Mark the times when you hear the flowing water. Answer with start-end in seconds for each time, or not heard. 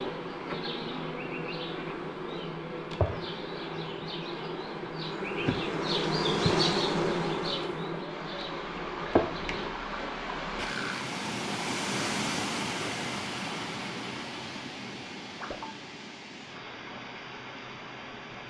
8.1-18.4.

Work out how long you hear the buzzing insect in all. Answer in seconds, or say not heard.
10 s.